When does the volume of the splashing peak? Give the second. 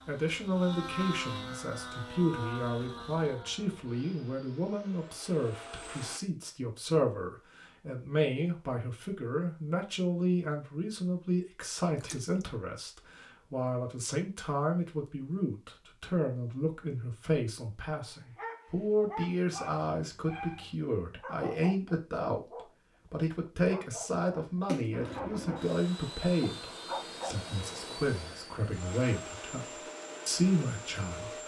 25 s.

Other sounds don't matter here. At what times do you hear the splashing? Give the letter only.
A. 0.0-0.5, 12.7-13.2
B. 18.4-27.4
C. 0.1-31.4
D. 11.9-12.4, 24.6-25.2
D.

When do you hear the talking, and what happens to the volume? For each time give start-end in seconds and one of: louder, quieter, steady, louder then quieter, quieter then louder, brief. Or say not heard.
0.1-31.4 steady.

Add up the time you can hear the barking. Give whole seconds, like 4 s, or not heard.
9 s.